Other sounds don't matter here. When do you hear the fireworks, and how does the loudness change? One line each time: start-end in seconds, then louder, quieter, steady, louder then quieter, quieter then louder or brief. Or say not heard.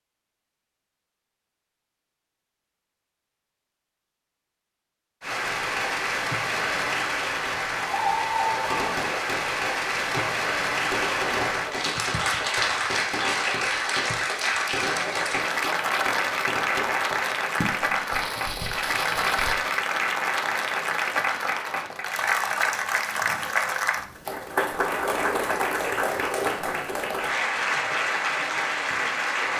8.3-19.6 steady.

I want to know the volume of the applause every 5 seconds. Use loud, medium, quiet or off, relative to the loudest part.
off, loud, loud, loud, loud, loud.